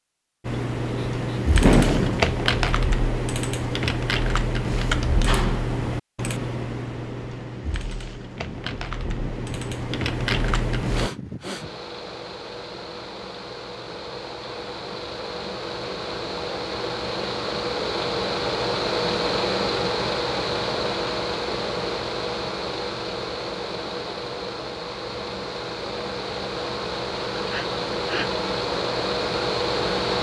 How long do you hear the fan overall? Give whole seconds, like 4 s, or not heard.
22 s.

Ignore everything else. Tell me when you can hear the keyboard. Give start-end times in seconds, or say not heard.
0.5-11.1.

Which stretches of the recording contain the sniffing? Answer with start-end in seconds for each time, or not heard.
0.9-2.2, 10.9-11.7, 27.4-28.3.